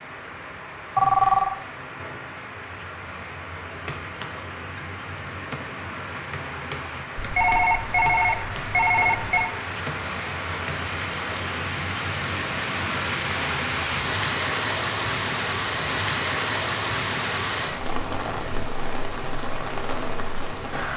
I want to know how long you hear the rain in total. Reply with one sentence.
The rain can be heard for 21 seconds in total.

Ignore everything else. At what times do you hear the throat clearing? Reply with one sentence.
The throat clearing can't be heard in this clip.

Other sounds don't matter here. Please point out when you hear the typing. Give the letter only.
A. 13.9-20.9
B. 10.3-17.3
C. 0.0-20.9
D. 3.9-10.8
D.